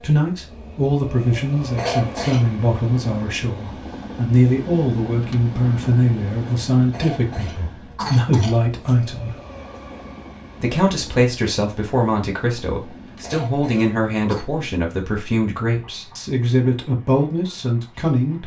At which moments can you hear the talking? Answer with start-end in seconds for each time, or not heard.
0.0-9.3, 10.6-18.4.